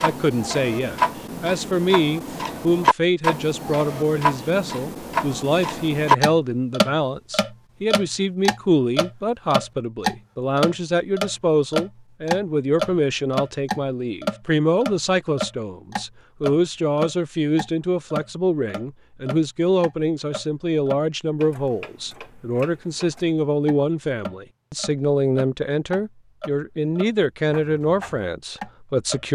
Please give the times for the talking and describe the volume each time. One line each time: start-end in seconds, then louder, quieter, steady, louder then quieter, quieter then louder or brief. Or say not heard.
0.0-29.2 steady.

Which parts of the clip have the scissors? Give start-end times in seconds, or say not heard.
not heard.